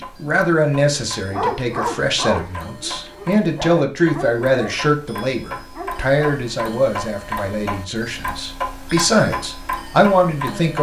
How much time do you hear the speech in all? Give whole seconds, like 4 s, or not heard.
11 s.